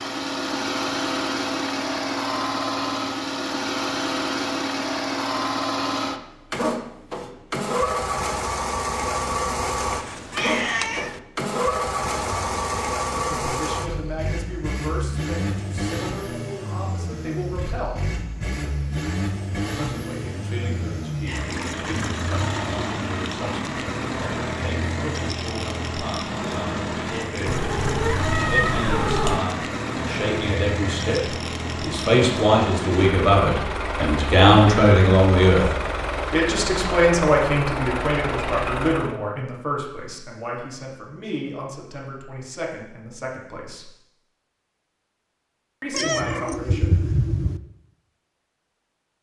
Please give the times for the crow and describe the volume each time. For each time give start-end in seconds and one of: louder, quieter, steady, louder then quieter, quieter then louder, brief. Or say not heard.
not heard.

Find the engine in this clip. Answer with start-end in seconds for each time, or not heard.
0.0-39.1.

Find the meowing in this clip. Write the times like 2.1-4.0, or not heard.
9.9-11.2, 27.4-29.4, 45.9-47.6.